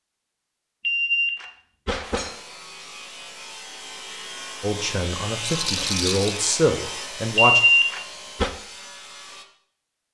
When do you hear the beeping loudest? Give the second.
8 s.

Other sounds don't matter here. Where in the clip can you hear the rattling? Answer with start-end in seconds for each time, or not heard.
5.4-6.4.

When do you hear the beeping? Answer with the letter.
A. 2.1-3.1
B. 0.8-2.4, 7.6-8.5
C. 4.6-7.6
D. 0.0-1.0
B.